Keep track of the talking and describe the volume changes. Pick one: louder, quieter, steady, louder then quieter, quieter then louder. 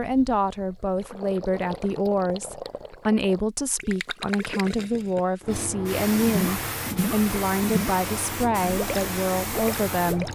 steady.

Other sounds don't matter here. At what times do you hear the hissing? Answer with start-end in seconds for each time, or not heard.
5.4-10.3.